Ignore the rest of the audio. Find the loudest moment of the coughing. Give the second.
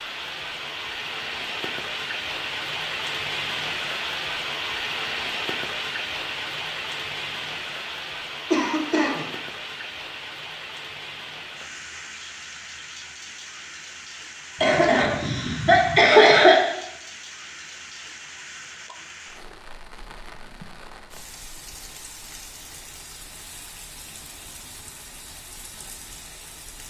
16 s.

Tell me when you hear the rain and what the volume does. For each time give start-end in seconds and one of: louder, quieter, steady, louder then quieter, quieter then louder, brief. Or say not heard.
0.0-26.8 quieter.